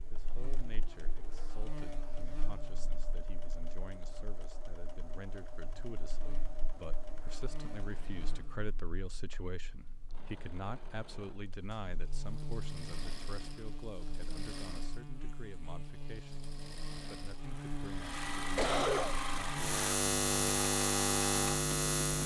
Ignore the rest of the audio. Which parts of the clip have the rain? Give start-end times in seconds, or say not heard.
not heard.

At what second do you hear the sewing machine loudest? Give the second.
19 s.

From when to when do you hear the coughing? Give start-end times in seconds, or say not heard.
17.9-19.2.